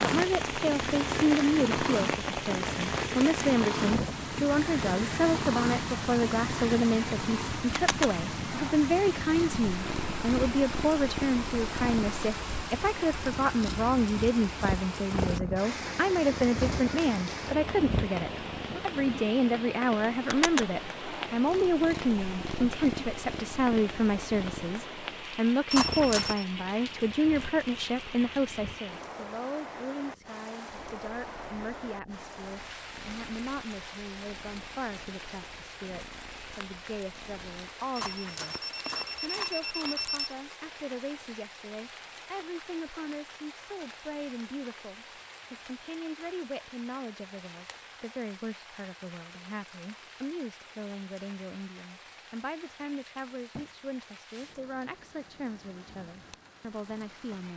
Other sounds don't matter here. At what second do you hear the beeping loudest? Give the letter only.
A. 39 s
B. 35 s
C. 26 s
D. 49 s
C.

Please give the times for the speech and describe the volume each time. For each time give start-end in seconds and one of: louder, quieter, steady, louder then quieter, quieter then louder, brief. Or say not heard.
0.0-57.5 quieter.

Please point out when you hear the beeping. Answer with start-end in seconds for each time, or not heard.
25.7-26.4, 38.0-40.4.